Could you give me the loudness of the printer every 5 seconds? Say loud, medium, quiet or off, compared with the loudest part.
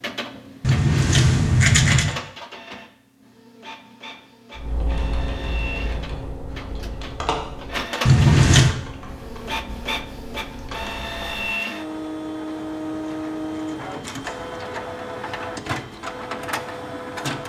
medium, loud, loud, loud.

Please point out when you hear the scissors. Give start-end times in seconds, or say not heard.
0.6-2.1, 8.1-8.8, 12.6-14.6.